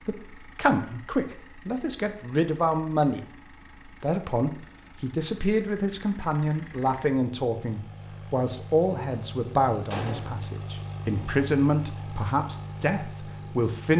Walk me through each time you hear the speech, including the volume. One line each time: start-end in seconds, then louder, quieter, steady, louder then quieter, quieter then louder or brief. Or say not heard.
0.0-13.9 steady.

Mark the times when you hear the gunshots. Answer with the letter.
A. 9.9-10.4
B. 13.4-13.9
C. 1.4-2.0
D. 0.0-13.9
A.